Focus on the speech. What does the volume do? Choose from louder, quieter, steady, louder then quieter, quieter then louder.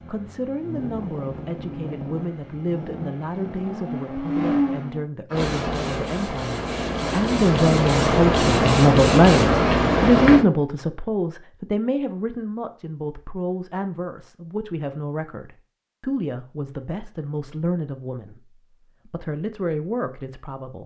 louder then quieter.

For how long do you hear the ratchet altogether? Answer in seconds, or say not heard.
not heard.